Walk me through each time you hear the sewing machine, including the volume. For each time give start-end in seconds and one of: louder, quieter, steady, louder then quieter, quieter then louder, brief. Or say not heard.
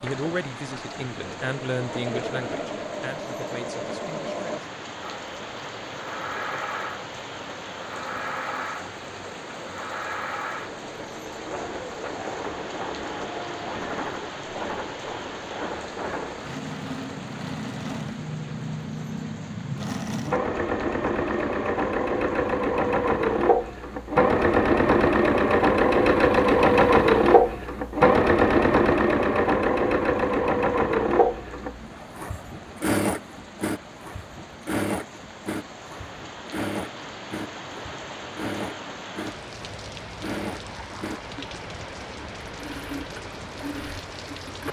0.0-44.6 louder then quieter.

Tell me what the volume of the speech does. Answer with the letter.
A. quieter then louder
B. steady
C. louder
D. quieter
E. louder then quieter
E.